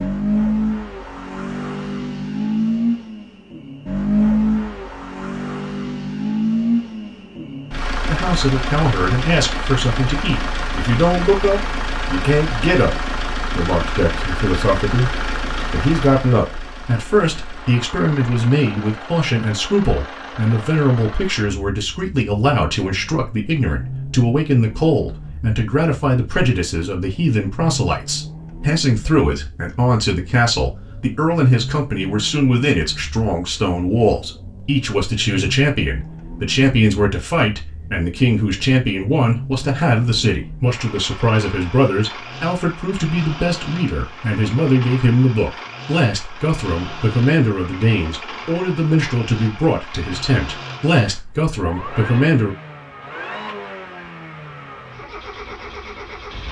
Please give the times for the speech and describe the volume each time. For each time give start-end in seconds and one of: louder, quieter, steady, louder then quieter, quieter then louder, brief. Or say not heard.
8.1-52.5 steady.